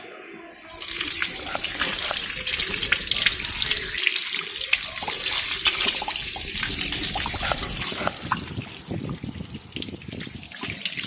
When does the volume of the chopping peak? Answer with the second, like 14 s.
8 s.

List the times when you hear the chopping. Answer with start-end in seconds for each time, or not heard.
1.0-2.4, 7.0-8.3.